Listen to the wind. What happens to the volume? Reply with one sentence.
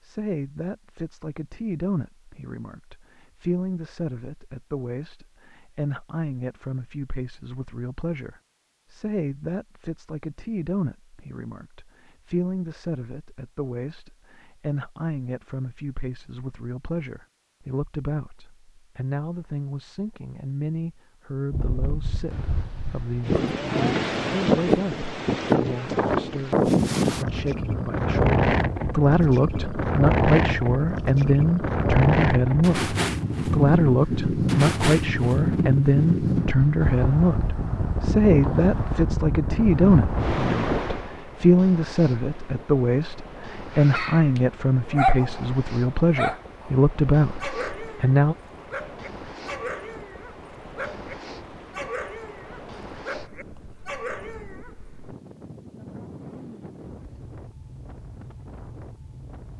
The volume of the wind goes down.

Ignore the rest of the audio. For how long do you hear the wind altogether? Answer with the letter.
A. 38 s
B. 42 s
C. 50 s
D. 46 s
A.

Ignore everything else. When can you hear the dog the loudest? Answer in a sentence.
The volume of the dog peaks at 45 seconds.